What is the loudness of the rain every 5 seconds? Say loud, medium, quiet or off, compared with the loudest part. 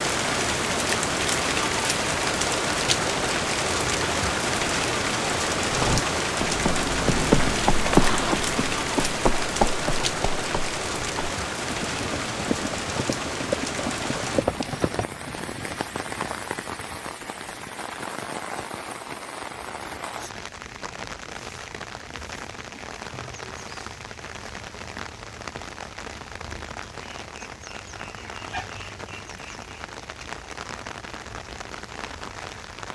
loud, loud, medium, medium, quiet, quiet, quiet.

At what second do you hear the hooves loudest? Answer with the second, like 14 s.
8 s.